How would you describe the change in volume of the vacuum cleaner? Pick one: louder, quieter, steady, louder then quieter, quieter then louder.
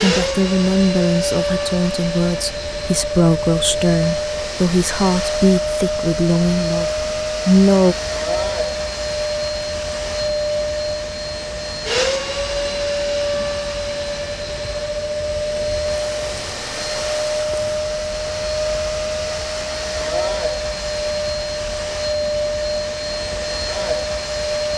steady.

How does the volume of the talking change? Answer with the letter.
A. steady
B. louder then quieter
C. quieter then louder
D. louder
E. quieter
A.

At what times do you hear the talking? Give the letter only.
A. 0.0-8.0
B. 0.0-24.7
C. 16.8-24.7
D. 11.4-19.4
A.